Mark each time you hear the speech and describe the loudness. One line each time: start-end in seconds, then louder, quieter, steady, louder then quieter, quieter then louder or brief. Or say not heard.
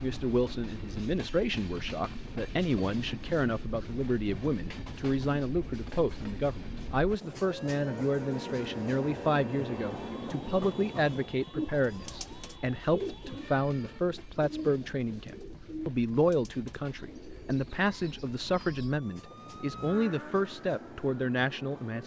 0.0-22.0 steady.